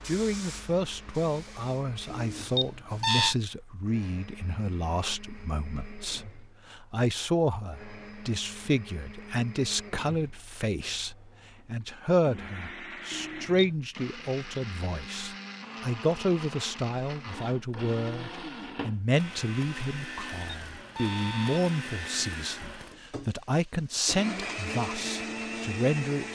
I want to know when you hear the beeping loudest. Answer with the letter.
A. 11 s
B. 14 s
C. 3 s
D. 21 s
C.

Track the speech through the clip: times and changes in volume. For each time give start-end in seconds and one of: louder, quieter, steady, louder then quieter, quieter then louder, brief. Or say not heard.
0.1-26.3 steady.